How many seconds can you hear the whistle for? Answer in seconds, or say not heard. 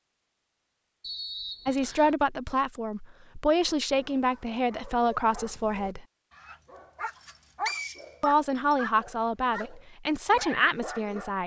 3 s.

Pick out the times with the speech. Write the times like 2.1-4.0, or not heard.
1.6-6.0, 8.2-11.4.